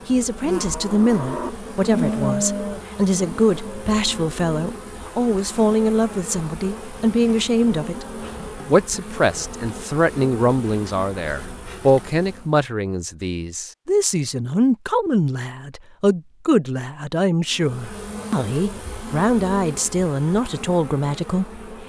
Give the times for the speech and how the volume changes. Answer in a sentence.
You can hear the speech from 0.1 to 21.6 s, at a steady volume.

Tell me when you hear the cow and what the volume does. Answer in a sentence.
The cow can be heard from 0.0 to 4.2 s, getting louder then quieter.